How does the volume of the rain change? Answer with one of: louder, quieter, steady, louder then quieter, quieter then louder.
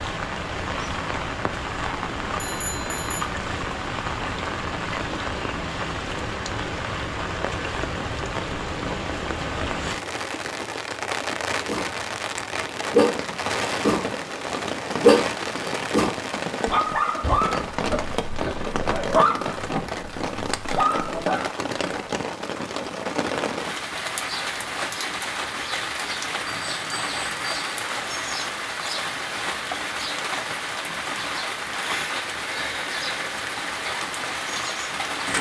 steady.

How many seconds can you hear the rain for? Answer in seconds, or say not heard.
35 s.